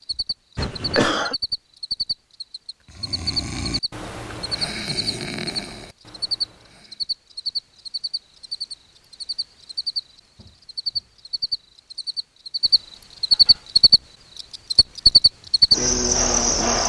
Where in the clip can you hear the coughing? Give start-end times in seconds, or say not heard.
0.6-1.4.